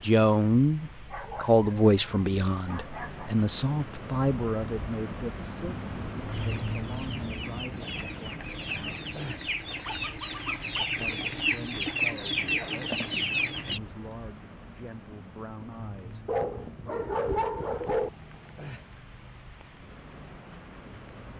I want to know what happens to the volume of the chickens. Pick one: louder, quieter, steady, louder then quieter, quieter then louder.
louder.